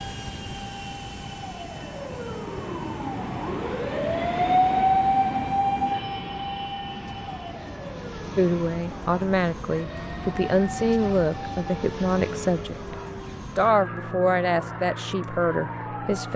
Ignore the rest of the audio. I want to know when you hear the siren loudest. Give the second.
5 s.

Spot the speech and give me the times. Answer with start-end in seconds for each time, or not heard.
8.3-12.9, 13.6-16.3.